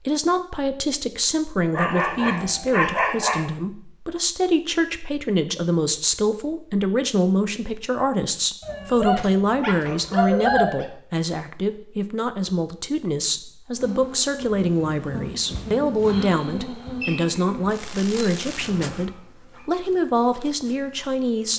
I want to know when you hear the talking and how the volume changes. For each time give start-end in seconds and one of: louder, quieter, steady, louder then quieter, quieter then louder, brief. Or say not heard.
0.1-21.5 steady.